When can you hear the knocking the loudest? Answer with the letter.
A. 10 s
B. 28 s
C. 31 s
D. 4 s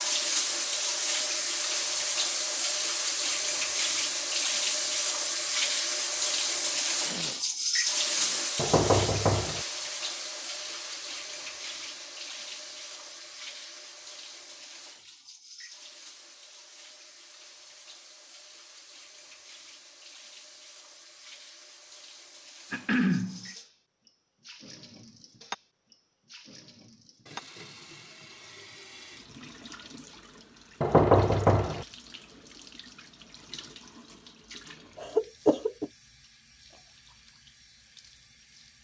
C.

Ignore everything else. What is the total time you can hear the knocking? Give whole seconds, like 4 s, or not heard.
2 s.